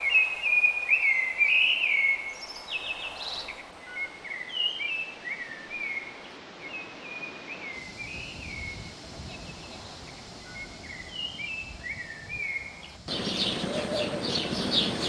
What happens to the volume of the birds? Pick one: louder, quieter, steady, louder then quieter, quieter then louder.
quieter then louder.